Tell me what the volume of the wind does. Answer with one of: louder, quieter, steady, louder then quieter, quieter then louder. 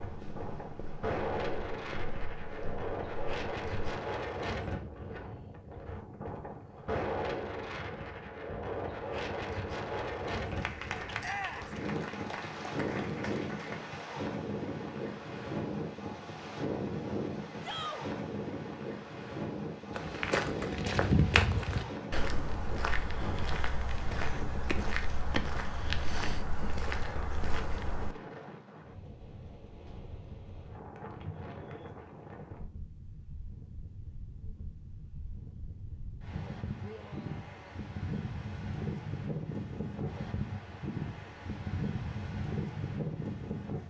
quieter then louder.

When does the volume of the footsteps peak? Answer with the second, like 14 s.
21 s.